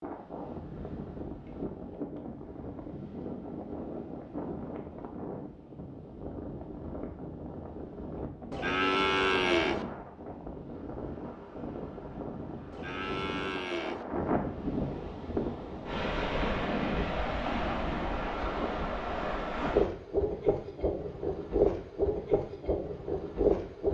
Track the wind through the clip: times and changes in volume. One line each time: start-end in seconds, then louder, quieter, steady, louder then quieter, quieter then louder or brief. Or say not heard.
0.0-23.8 louder.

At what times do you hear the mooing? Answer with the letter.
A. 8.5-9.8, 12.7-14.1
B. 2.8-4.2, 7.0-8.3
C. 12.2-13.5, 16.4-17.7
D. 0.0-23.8
A.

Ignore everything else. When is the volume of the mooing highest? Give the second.
9 s.